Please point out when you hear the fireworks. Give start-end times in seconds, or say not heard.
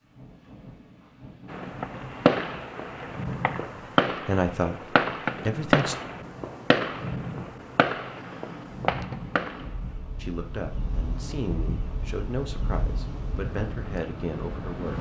1.5-9.8.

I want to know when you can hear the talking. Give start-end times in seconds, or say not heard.
4.2-4.8, 5.5-6.0, 10.2-14.9.